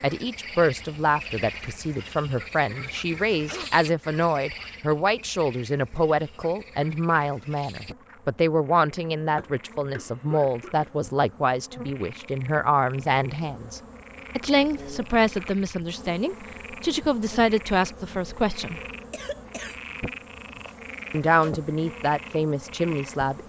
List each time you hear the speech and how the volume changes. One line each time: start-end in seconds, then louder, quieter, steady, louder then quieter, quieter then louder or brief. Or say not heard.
0.0-18.8 steady
21.1-23.4 brief.